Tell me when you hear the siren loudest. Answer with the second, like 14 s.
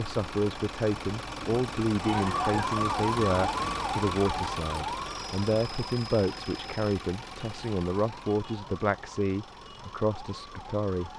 3 s.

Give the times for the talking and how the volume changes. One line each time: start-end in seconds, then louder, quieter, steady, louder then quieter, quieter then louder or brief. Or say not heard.
0.0-11.1 steady.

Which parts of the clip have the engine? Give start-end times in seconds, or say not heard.
0.0-11.1.